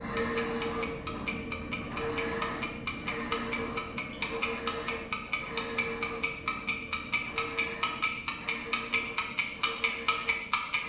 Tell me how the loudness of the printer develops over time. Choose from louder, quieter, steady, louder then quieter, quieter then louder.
quieter.